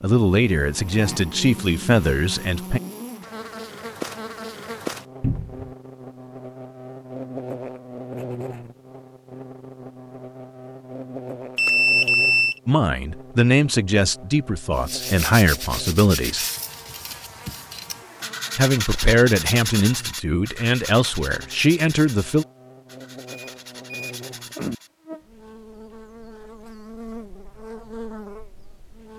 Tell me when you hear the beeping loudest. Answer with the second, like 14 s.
12 s.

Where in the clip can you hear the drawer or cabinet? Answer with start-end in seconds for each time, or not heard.
5.2-5.7.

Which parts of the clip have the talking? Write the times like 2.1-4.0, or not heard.
0.0-2.8, 12.7-16.4, 18.6-22.4.